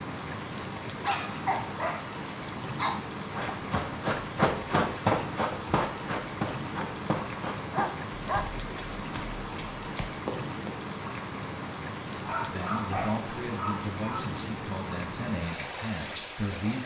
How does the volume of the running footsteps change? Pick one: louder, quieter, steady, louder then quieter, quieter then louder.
quieter.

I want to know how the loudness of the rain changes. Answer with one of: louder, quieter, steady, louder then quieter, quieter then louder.
steady.